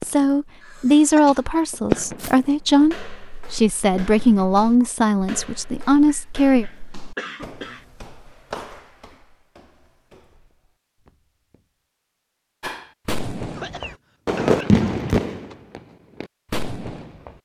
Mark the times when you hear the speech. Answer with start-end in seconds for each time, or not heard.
0.0-6.7.